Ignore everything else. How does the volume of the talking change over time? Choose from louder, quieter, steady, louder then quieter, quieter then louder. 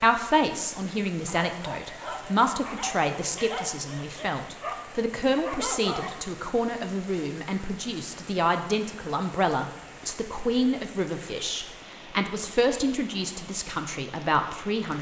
steady.